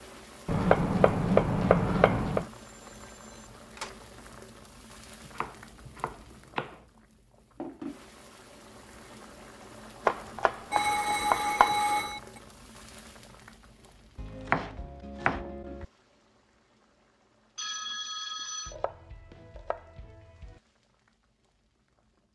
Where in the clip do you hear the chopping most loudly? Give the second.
1 s.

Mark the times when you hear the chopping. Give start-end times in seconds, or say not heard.
0.5-2.5, 5.2-6.8, 10.1-11.8, 14.2-15.8, 18.6-20.6.